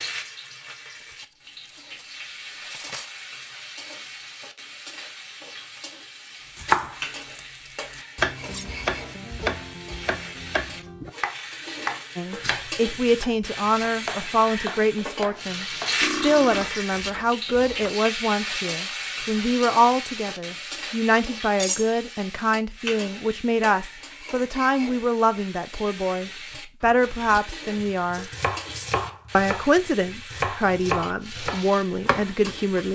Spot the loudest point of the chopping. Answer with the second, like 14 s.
7 s.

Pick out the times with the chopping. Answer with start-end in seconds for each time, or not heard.
6.5-17.9, 26.8-32.9.